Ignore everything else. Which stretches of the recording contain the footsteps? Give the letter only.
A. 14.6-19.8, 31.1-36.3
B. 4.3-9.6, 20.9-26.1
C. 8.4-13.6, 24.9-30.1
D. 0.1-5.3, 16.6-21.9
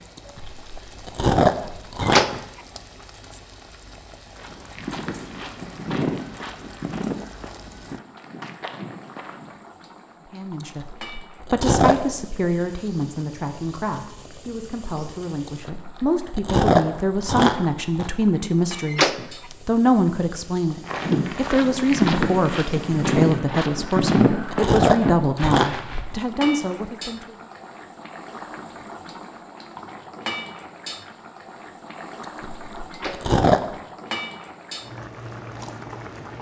B.